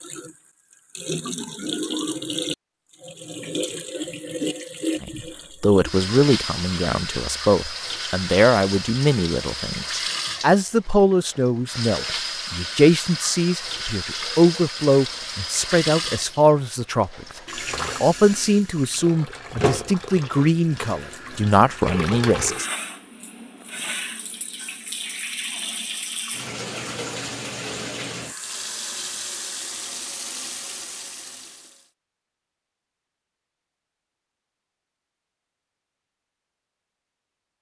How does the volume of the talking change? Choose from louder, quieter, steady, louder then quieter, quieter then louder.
steady.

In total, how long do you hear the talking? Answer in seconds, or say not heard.
18 s.